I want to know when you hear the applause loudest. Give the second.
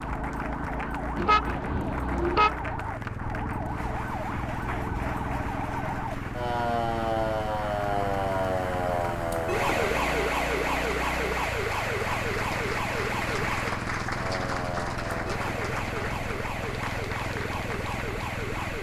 14 s.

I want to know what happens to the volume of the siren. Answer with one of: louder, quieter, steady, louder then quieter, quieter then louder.
louder then quieter.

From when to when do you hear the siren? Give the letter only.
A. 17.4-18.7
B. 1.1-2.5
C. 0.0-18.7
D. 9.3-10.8
C.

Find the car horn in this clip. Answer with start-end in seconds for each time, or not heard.
1.1-2.5.